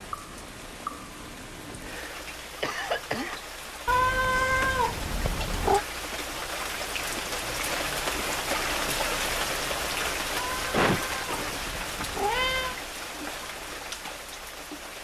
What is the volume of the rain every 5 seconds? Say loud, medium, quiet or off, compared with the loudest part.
medium, loud, loud.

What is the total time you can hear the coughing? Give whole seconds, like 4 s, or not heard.
3 s.